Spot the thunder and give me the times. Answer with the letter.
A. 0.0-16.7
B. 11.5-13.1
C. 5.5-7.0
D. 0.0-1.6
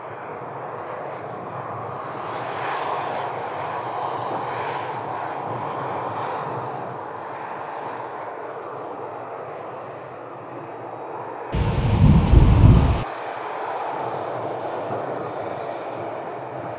B.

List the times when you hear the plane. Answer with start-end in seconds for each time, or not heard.
0.0-16.7.